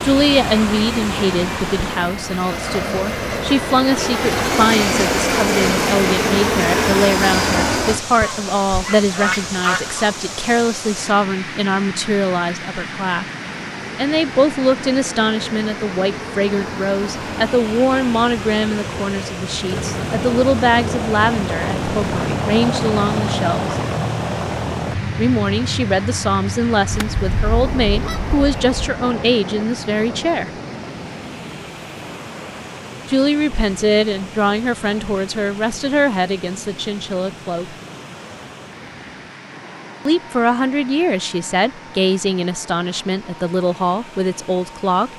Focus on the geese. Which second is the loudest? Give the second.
10 s.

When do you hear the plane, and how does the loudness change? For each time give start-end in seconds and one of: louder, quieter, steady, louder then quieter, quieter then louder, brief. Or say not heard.
0.0-8.0 louder
13.4-45.1 louder then quieter.